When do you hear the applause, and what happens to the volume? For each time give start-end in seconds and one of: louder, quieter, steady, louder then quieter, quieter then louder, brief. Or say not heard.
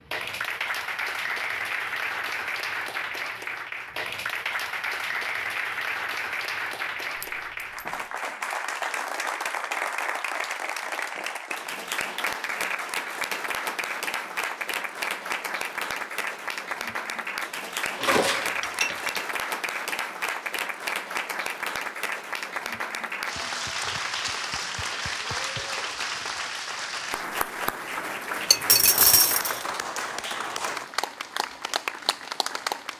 0.0-32.9 steady.